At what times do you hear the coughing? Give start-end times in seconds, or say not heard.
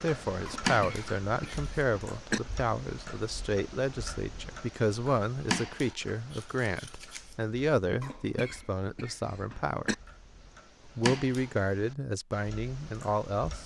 0.5-2.4, 8.0-9.9.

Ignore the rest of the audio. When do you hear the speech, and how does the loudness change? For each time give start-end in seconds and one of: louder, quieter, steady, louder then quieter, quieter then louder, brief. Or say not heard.
0.0-9.9 steady
10.8-13.6 brief.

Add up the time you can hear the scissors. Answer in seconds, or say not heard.
3 s.